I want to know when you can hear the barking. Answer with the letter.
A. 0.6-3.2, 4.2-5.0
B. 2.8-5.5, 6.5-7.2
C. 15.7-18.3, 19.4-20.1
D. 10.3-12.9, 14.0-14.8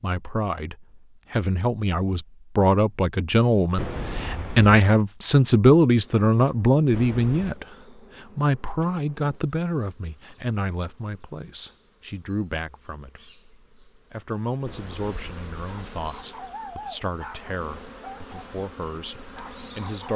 C.